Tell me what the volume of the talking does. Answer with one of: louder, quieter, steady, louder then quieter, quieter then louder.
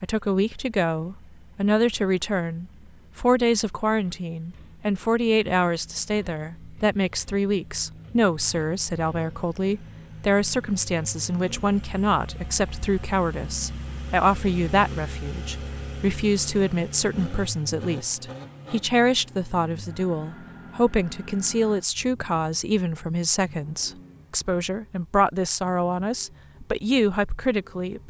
steady.